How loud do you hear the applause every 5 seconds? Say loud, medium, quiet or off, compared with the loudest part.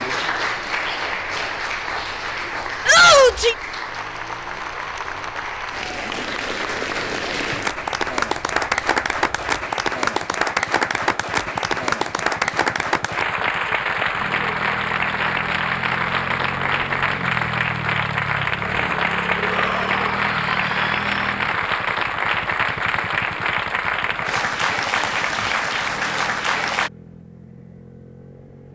medium, loud, loud, loud, loud, loud.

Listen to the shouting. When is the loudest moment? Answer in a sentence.
The volume of the shouting peaks at 3 seconds.